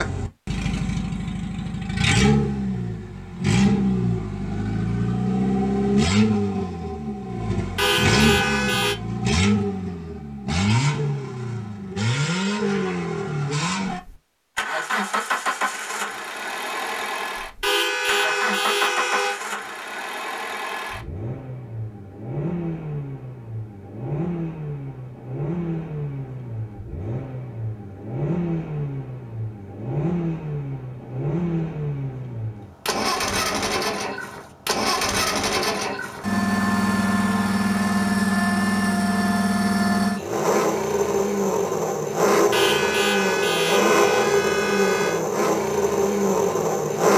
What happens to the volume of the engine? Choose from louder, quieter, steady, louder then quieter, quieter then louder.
quieter then louder.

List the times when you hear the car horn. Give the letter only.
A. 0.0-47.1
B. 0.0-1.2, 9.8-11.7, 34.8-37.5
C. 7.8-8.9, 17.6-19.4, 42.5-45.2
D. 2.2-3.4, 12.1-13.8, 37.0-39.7
C.